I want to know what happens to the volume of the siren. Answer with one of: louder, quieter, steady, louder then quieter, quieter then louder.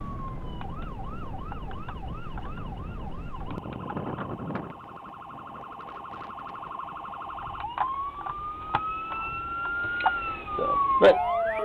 louder.